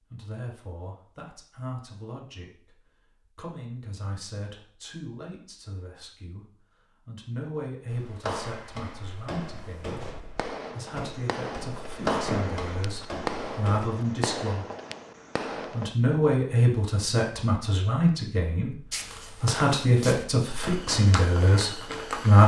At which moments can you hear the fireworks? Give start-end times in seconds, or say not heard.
10.0-15.9.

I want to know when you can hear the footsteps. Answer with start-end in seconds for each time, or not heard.
7.8-13.9, 18.9-22.4.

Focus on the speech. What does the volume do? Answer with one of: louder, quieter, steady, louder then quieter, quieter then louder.
louder.